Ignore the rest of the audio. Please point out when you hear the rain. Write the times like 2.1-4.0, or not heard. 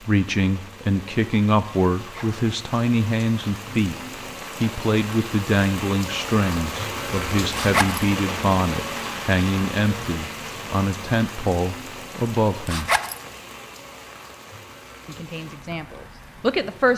0.0-16.9.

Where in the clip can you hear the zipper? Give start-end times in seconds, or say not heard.
1.9-2.5, 7.5-8.1, 12.7-13.2.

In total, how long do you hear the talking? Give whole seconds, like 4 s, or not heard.
14 s.